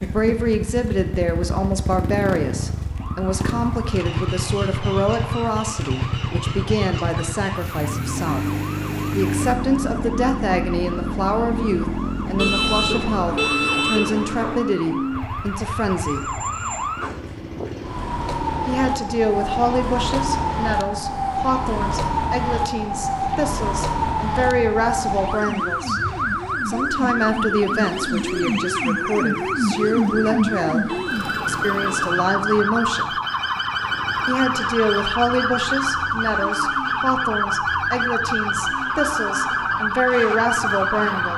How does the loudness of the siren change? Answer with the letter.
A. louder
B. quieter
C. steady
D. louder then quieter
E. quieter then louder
A.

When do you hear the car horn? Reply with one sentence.
The car horn can be heard from 12.3 to 14.6 s and from 30.9 to 32.2 s.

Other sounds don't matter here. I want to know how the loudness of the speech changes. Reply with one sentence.
The loudness of the speech stays about the same.